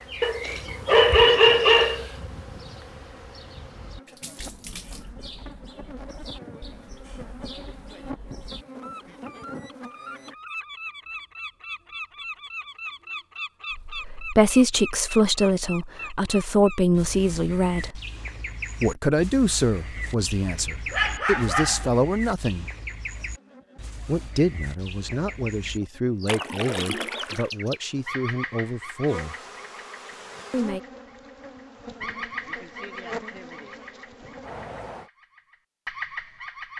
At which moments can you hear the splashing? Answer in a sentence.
You can hear the splashing from 4.0 to 5.2 s and from 26.2 to 27.5 s.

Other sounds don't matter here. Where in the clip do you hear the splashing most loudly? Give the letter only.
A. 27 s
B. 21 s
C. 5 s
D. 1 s
A.